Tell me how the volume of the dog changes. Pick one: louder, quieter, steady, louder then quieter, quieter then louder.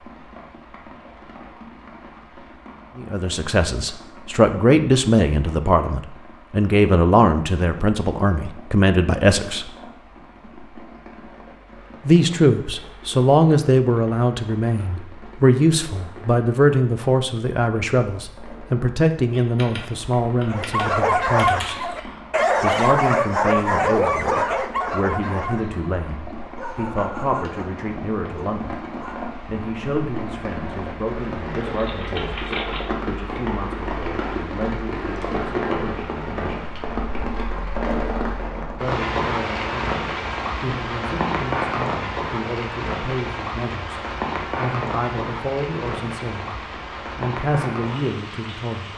quieter.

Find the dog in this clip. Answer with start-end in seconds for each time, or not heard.
20.4-29.2.